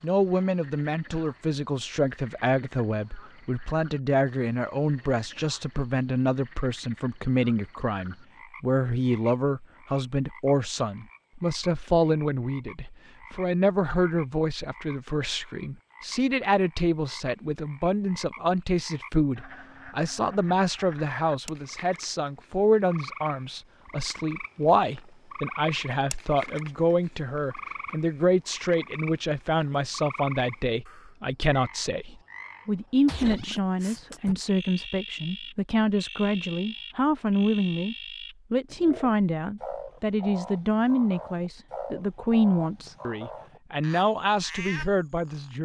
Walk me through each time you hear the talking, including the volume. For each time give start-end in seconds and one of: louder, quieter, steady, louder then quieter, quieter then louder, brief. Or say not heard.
0.0-45.6 steady.